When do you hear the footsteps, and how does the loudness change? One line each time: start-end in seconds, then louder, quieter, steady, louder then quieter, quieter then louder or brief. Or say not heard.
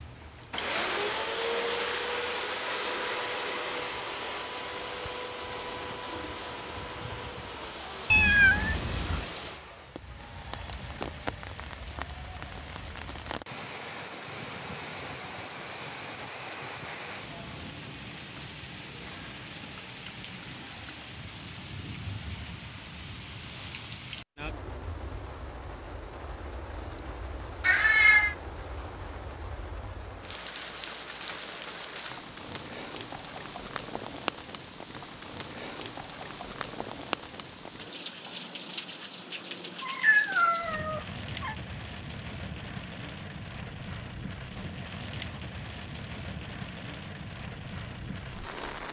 not heard.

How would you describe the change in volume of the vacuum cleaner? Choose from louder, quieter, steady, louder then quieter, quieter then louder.
quieter.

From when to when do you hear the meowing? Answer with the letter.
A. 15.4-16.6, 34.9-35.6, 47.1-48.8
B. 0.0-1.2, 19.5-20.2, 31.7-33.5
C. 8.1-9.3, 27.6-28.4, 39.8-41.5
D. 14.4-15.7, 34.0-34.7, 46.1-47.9
C.